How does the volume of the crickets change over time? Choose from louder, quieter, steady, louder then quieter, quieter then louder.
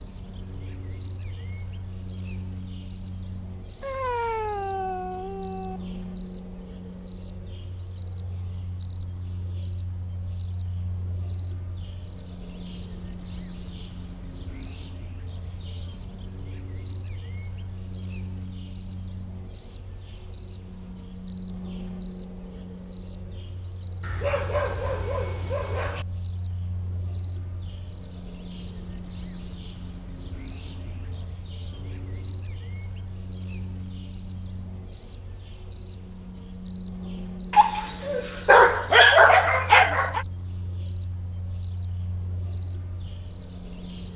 steady.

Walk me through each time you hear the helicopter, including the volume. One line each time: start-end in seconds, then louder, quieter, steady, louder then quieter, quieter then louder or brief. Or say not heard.
not heard.